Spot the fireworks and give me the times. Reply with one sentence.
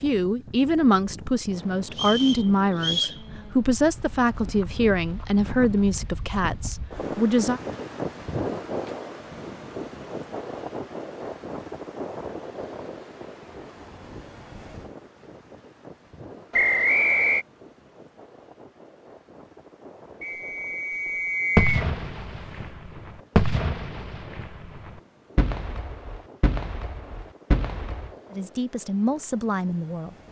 You can hear the fireworks from 21.6 to 28.1 s.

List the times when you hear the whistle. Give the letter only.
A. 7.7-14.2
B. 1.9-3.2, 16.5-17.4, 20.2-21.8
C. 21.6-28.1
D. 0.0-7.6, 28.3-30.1
B.